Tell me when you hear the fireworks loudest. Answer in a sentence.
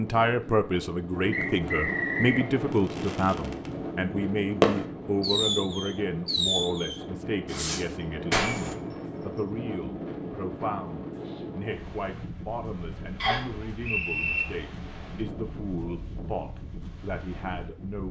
The volume of the fireworks peaks at 5 seconds.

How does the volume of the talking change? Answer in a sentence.
The loudness of the talking goes down.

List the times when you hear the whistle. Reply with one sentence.
You can hear the whistle from 1.3 to 2.5 s, from 8.3 to 9.4 s and from 13.2 to 14.4 s.